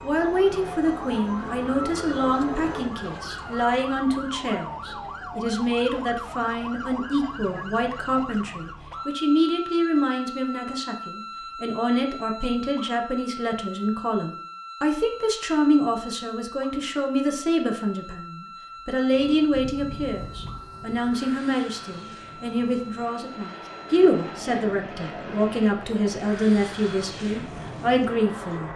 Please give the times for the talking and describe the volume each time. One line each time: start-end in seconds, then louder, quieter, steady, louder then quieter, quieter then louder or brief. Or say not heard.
0.0-28.7 steady.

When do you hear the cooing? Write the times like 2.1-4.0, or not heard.
not heard.